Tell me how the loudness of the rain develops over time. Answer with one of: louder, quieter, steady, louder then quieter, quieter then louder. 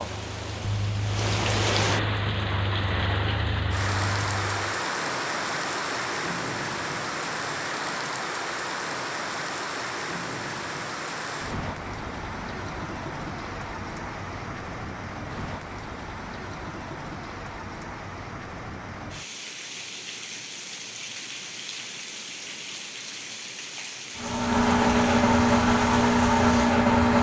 quieter.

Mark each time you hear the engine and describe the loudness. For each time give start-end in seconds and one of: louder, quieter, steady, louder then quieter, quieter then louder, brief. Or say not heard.
0.0-4.7 steady
24.1-27.1 brief.